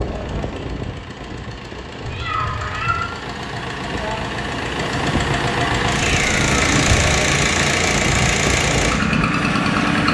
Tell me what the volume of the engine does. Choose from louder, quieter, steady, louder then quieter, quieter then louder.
louder.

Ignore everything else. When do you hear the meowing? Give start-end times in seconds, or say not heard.
2.0-3.0, 6.0-7.2.